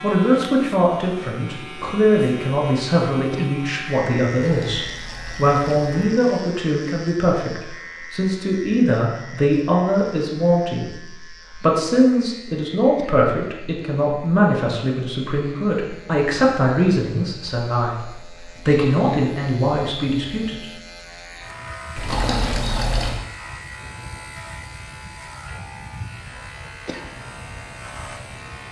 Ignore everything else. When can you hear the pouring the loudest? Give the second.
22 s.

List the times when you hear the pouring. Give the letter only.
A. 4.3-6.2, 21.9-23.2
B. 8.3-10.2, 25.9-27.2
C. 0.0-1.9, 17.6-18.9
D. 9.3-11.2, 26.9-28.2
A.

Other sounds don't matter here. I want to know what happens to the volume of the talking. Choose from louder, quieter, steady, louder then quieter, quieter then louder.
steady.